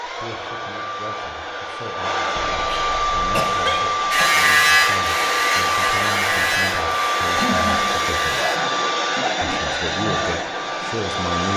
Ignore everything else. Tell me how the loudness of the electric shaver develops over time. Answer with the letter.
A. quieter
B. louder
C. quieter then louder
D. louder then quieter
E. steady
A.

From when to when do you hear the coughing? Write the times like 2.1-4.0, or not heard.
2.5-4.3, 7.3-9.6.